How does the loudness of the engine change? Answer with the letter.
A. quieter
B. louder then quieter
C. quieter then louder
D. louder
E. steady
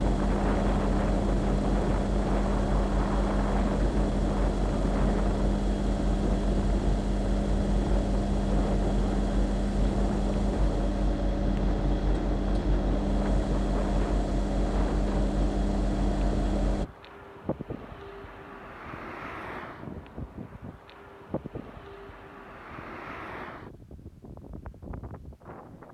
E.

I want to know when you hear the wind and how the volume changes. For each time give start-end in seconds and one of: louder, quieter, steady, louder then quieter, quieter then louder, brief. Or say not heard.
0.0-25.8 quieter.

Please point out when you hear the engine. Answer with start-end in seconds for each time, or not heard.
0.0-16.9.